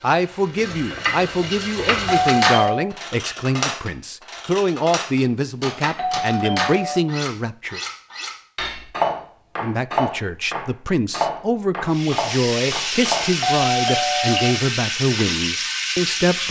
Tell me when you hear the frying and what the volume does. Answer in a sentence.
You can hear the frying briefly from 0.0 to 2.6 s; and from 11.8 to 16.4 s, at a steady volume.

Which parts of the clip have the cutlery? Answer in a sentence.
You can hear the cutlery from 2.2 to 13.3 s.